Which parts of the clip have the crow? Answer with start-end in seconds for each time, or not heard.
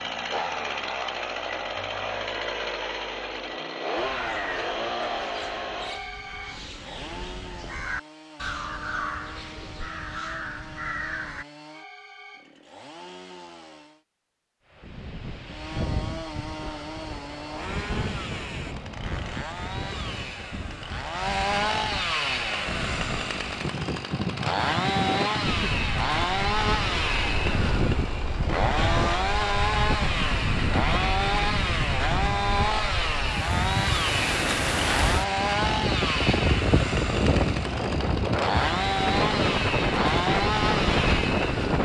4.0-11.4.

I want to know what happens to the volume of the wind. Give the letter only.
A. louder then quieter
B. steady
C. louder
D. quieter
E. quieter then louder
C.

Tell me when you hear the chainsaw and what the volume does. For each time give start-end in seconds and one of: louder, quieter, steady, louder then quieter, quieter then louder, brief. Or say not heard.
0.0-14.1 quieter
15.4-41.8 louder.